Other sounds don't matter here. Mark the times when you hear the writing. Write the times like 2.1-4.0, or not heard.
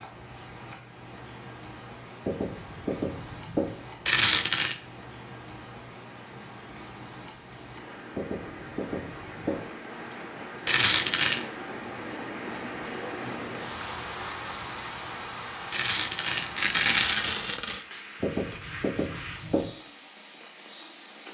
2.2-3.8, 8.1-9.7, 18.2-19.7.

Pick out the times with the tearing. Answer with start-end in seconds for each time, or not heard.
4.0-4.8, 10.7-11.4, 15.7-17.9.